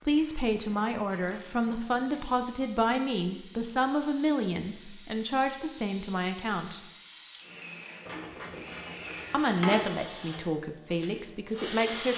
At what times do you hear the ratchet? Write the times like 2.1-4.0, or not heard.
0.6-2.3, 8.1-9.9.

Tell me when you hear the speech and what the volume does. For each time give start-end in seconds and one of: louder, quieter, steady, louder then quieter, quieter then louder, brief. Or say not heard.
0.1-6.9 steady
9.3-12.1 brief.